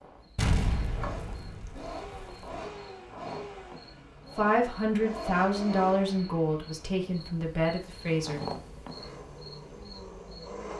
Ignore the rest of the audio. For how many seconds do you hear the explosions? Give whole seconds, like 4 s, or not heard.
2 s.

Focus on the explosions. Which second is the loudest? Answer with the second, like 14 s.
1 s.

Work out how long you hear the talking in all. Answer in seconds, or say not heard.
4 s.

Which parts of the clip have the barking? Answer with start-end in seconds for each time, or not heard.
not heard.